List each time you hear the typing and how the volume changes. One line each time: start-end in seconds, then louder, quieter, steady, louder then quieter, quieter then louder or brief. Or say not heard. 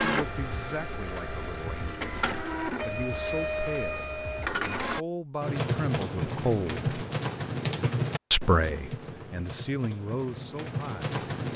5.4-11.5 quieter then louder.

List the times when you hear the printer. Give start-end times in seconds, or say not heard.
0.0-5.0.